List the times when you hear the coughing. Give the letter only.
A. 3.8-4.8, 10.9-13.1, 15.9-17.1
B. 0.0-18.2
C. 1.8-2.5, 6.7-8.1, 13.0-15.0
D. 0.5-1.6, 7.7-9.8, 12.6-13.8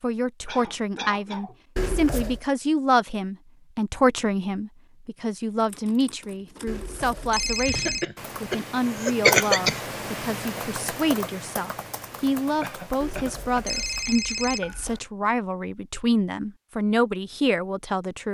D.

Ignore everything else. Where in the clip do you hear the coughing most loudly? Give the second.
9 s.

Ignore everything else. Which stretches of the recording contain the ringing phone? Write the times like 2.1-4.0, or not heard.
1.8-2.5, 6.7-8.1, 13.0-15.0.